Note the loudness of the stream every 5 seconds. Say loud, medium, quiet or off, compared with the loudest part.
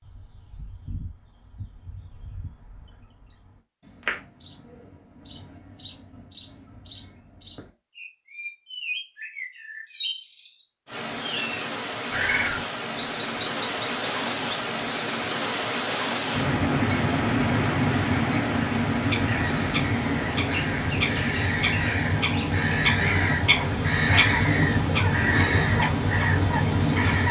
off, off, medium, loud, medium, medium.